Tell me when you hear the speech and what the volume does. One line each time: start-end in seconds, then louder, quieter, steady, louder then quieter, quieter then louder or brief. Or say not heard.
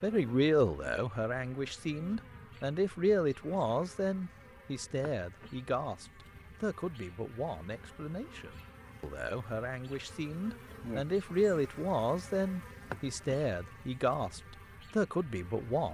0.0-15.9 quieter then louder.